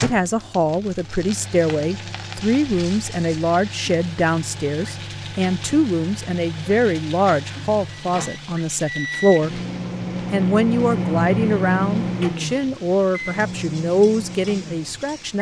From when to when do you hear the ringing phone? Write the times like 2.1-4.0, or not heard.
not heard.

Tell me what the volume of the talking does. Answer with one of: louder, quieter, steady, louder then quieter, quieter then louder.
steady.